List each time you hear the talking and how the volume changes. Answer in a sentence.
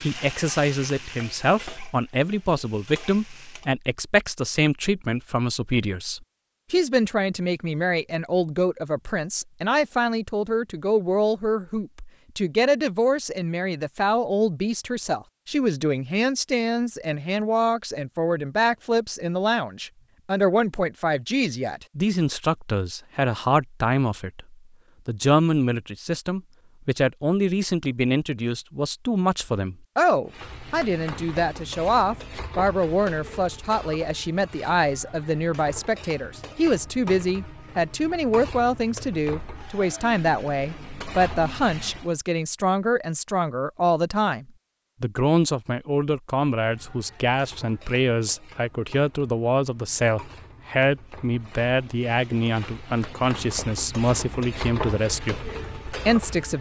You can hear the talking from 0.0 to 56.5 s, at a steady volume.